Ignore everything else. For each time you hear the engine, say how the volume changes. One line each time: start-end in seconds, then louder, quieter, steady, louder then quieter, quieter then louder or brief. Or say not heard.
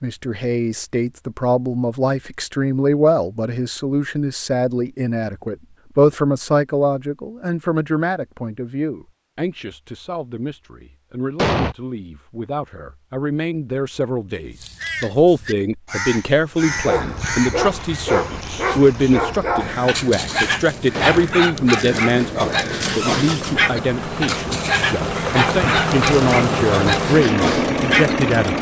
22.8-28.5 louder.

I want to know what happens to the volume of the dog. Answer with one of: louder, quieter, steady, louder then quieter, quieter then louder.
steady.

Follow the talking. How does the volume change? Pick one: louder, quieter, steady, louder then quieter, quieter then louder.
steady.